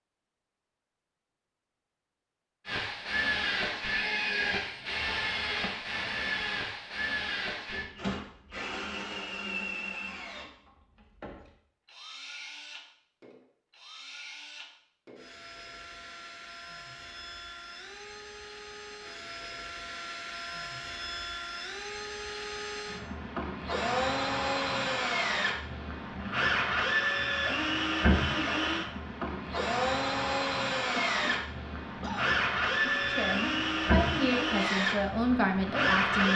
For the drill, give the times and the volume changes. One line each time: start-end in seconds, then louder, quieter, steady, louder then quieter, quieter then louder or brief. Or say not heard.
2.6-36.3 quieter then louder.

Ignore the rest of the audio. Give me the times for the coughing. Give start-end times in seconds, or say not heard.
30.9-32.4.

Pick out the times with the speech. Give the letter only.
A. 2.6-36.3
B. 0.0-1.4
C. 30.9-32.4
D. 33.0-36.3
D.